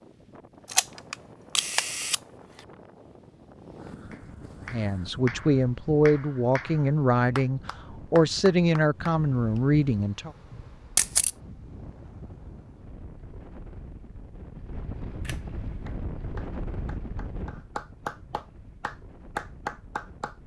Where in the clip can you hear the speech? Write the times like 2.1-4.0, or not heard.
4.6-10.3.